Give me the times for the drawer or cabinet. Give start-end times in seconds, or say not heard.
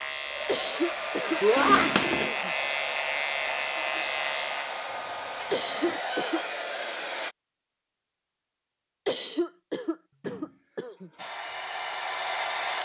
not heard.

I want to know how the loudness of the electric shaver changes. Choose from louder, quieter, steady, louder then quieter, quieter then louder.
louder.